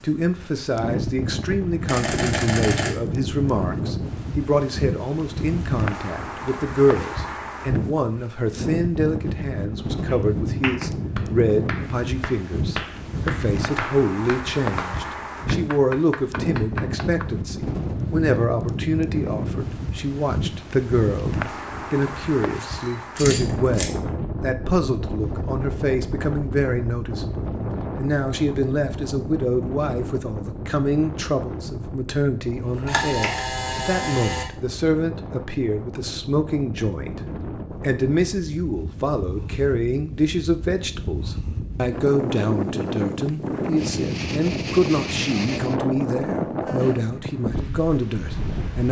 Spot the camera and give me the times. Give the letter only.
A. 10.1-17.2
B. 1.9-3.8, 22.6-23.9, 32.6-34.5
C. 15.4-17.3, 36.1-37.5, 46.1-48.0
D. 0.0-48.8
B.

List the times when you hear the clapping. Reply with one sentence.
The clapping can be heard from 10.1 to 17.2 s.